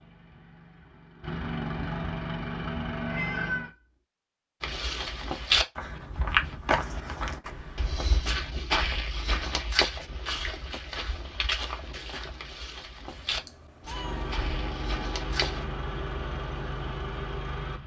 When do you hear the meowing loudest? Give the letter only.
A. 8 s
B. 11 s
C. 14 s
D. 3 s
D.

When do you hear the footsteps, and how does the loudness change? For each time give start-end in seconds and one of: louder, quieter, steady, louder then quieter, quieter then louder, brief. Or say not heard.
4.6-15.7 quieter.